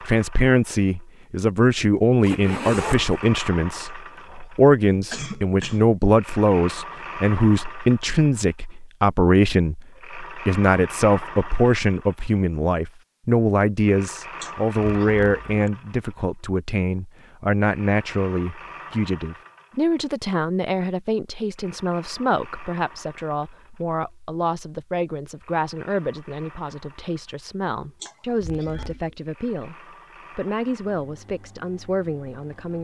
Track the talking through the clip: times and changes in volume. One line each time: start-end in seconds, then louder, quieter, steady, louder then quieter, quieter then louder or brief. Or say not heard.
0.0-32.7 quieter.